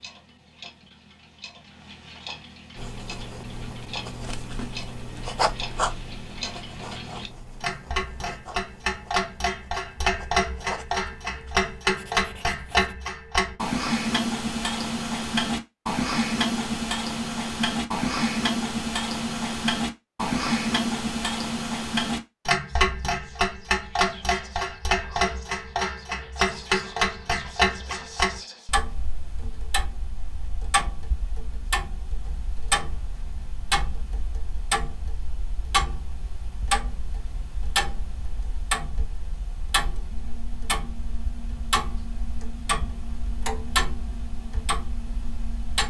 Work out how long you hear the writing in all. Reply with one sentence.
The writing can be heard for 10 seconds in total.